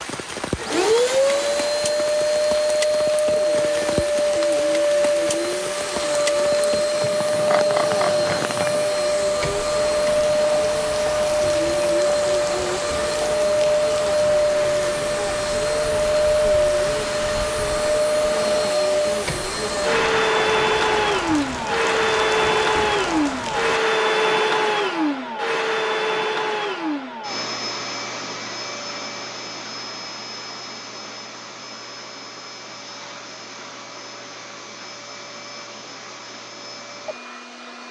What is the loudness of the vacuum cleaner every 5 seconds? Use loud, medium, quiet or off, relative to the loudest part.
loud, loud, loud, loud, loud, medium, quiet, quiet.